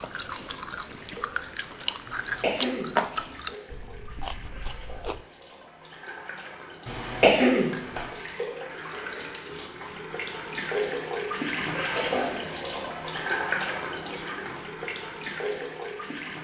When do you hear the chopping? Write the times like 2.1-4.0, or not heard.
not heard.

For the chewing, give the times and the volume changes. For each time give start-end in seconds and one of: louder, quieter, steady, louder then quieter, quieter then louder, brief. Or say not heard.
0.0-5.2 louder then quieter.